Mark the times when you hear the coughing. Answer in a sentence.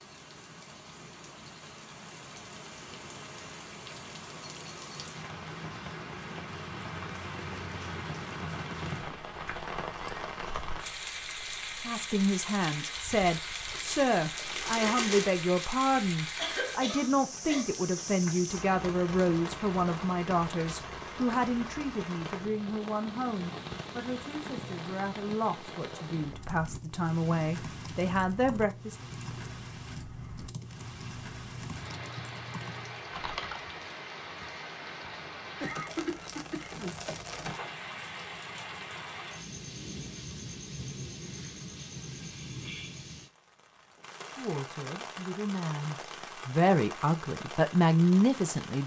The coughing can be heard from 16.4 to 17.7 s and from 35.6 to 37.0 s.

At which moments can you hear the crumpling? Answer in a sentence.
You can hear the crumpling from 13.7 to 15.4 s and from 35.9 to 37.5 s.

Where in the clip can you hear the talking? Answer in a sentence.
You can hear the talking from 11.8 to 28.9 s and from 44.4 to 48.8 s.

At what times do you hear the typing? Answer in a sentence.
You can hear the typing from 26.3 to 33.7 s.